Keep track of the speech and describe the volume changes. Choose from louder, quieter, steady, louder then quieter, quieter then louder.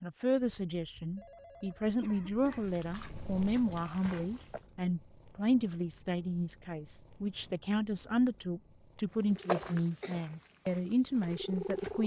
steady.